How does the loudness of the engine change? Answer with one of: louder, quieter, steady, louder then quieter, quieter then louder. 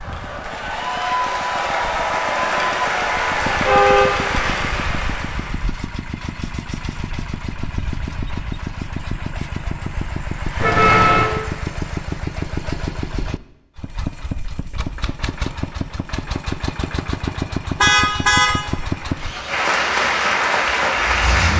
louder.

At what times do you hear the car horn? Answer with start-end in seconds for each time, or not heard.
3.5-4.1, 10.6-11.2, 17.8-18.5.